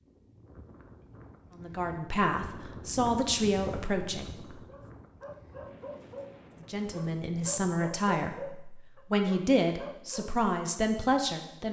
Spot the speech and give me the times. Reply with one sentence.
You can hear the speech from 1.6 to 4.5 s and from 6.7 to 11.6 s.